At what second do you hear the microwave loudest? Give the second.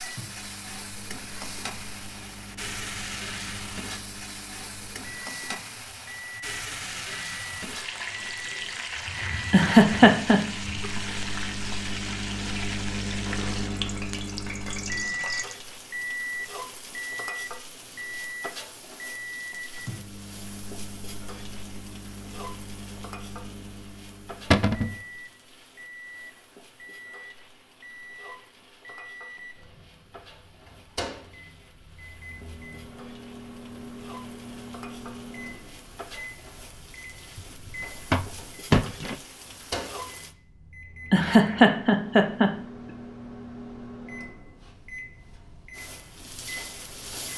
15 s.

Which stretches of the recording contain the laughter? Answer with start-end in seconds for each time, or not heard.
9.5-10.4, 41.1-42.5.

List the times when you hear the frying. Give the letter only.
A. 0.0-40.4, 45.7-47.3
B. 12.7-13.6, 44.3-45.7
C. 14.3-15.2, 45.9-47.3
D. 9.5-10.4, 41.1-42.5
A.